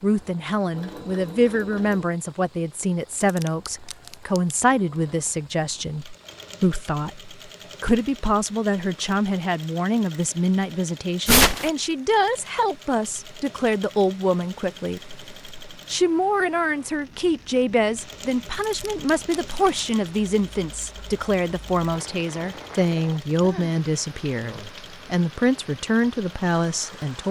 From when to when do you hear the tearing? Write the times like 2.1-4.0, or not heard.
3.2-4.5, 11.2-11.7, 18.6-19.9.